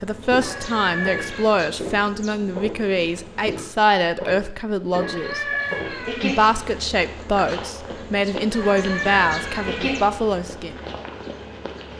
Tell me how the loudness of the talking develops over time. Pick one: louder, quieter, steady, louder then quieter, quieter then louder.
steady.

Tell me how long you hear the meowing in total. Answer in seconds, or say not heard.
4 s.